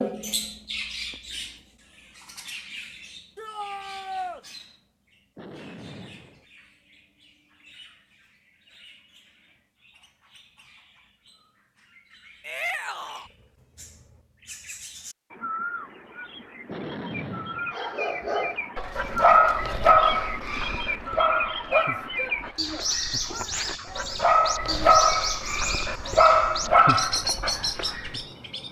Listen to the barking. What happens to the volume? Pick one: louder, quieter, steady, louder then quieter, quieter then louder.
quieter then louder.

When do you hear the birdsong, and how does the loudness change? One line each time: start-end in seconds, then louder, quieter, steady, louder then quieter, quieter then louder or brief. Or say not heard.
0.0-28.6 quieter then louder.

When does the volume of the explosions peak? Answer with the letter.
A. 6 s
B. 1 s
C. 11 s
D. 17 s
D.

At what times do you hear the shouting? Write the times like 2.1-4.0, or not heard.
3.4-4.5, 12.4-13.3, 21.7-24.1.